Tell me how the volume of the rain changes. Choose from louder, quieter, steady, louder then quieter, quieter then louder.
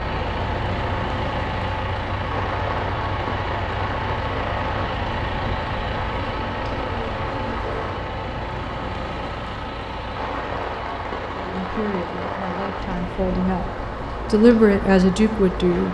steady.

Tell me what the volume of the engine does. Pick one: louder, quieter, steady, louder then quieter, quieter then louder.
quieter.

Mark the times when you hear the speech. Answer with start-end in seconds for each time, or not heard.
11.3-15.8.